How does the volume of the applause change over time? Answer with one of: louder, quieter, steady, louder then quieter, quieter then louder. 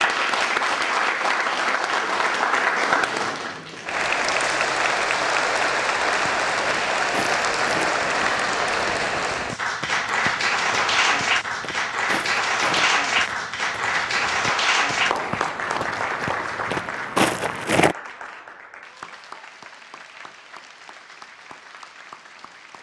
quieter.